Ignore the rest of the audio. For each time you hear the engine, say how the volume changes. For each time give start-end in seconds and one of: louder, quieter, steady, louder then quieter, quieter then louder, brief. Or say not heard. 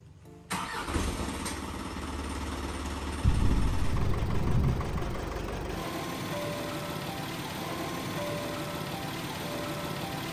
0.0-10.2 steady.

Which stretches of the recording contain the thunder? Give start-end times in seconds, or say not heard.
3.2-5.2.